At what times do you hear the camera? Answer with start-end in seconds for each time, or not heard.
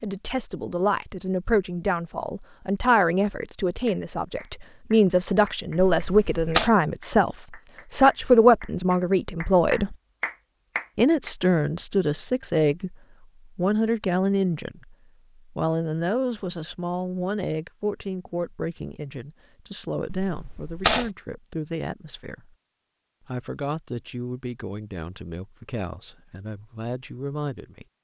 5.8-6.7, 20.2-21.1.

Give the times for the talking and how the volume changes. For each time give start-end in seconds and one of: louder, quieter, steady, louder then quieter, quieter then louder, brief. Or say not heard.
0.0-9.9 louder
10.9-22.6 quieter
23.2-27.9 quieter then louder.